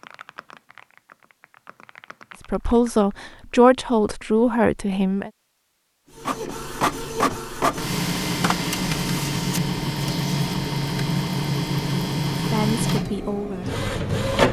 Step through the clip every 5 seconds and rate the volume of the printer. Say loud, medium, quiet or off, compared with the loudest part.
off, loud, loud.